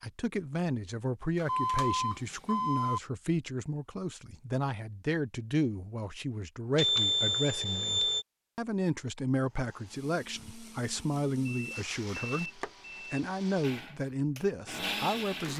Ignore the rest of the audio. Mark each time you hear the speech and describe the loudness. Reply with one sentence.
You can hear the speech from 0.0 to 15.5 s, at a steady volume.